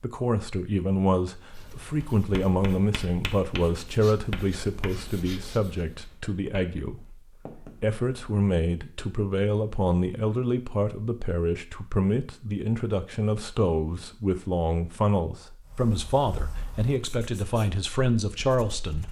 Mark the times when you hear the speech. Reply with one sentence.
The speech can be heard from 0.0 to 19.0 s.